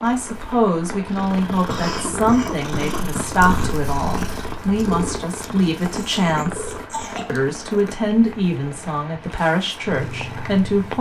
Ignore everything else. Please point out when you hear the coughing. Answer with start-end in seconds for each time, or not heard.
1.6-3.2, 6.1-7.4.